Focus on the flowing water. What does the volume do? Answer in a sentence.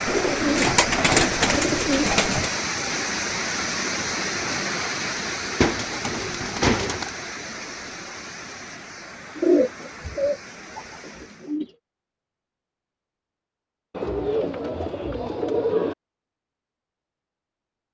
The volume of the flowing water goes down.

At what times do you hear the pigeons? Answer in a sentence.
You can hear the pigeons from 0.1 to 2.5 s, from 5.6 to 7.1 s, from 9.3 to 11.7 s and from 13.9 to 15.9 s.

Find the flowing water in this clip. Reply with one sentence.
The flowing water can be heard from 0.0 to 11.6 s.